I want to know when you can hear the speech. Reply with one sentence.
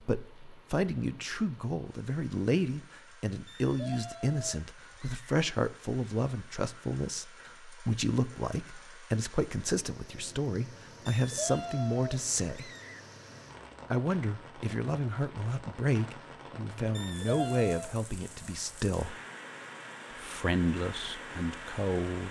The speech can be heard from 0.0 to 12.7 s, from 13.9 to 19.1 s and from 20.1 to 22.2 s.